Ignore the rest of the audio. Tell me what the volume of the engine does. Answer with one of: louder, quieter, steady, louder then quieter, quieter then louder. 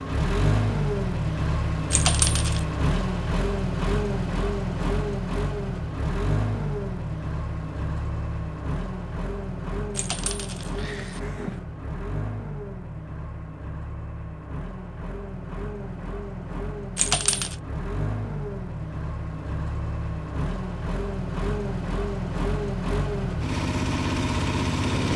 quieter then louder.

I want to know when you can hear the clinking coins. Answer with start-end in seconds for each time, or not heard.
1.9-2.6, 9.9-11.6, 16.9-17.6.